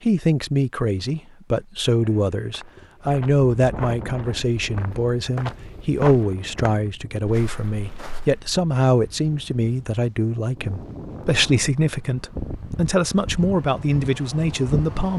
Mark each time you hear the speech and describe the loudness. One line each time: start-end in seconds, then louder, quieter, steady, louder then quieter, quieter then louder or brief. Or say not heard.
0.0-15.1 steady.